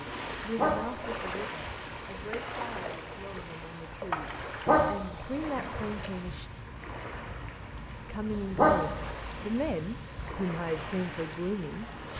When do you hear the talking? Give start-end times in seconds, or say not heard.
0.0-6.5, 8.1-12.1.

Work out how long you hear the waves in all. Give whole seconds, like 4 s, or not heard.
12 s.